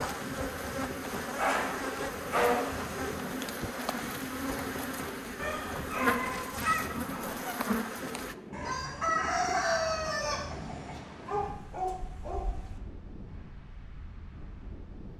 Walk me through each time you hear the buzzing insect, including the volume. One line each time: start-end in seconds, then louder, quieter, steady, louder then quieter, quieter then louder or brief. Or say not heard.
0.0-8.3 steady.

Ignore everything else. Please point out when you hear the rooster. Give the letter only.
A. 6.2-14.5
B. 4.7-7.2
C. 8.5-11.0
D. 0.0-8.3
C.